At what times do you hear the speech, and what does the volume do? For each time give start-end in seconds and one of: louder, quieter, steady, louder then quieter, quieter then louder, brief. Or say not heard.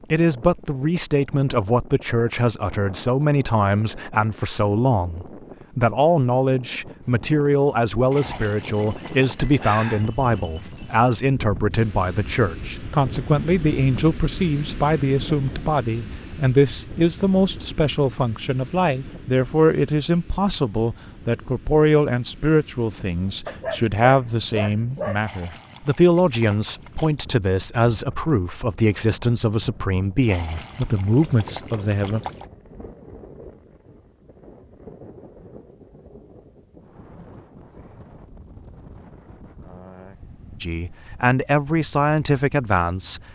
0.1-32.2 steady
40.6-43.2 brief.